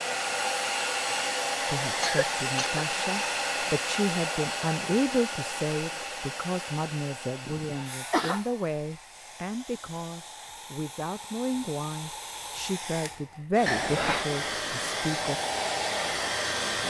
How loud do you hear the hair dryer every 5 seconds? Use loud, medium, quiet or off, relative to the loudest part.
loud, medium, medium, loud.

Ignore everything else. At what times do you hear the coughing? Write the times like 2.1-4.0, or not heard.
2.0-2.8, 7.5-8.4, 13.7-14.2.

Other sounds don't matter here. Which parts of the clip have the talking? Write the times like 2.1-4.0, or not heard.
1.6-15.3.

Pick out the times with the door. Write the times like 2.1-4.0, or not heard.
not heard.